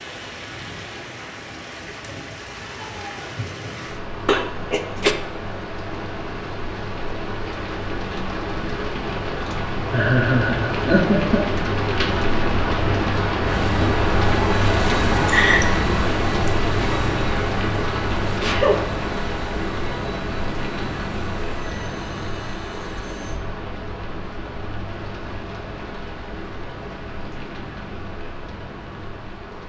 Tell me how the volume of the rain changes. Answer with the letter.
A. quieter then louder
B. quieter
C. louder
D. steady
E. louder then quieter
E.